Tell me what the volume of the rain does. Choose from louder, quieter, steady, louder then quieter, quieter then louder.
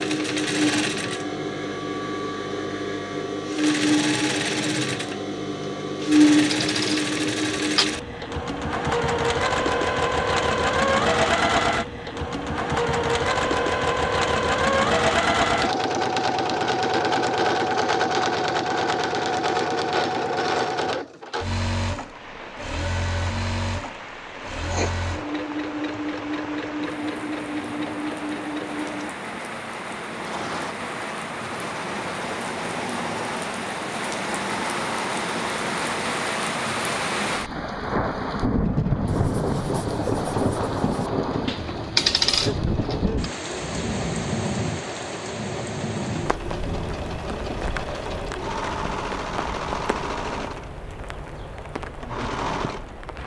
louder then quieter.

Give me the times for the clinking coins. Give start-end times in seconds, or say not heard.
6.0-7.8, 41.5-43.1.